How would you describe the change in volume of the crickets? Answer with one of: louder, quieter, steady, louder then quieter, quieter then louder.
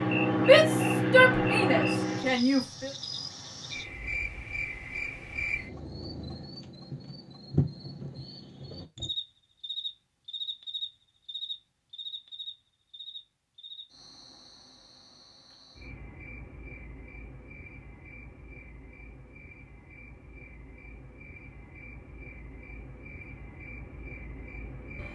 quieter.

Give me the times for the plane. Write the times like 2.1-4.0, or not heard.
0.0-2.4.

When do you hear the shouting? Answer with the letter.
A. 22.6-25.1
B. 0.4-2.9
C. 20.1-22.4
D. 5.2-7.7
B.